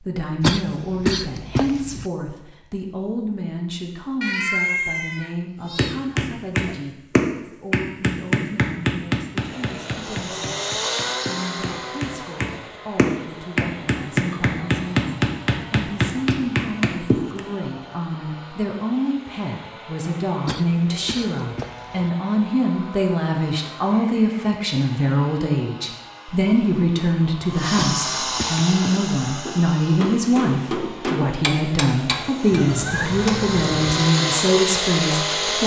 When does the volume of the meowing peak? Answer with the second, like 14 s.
5 s.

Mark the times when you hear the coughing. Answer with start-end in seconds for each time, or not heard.
0.4-2.0, 20.4-22.1, 27.8-28.6.